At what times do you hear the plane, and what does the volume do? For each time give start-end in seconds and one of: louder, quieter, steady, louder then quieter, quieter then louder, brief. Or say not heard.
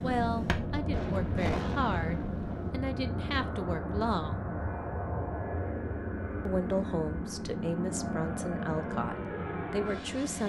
0.0-10.4 steady.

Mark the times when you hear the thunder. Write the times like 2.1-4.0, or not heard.
0.9-2.7.